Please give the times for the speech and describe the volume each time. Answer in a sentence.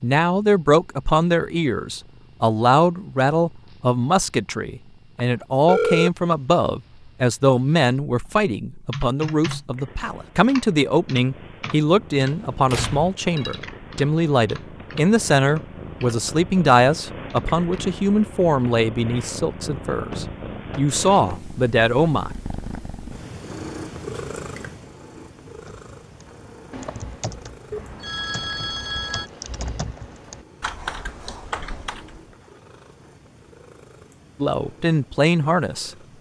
You can hear the speech from 0.0 to 22.3 s, at a steady volume; and briefly from 34.4 to 35.9 s.